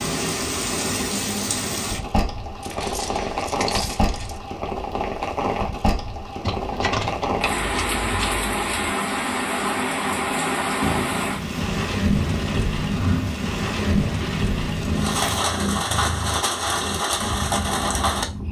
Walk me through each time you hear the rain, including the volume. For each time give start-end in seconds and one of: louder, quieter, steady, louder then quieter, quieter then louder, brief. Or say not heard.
0.0-18.2 steady.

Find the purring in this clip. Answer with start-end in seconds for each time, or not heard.
10.8-18.4.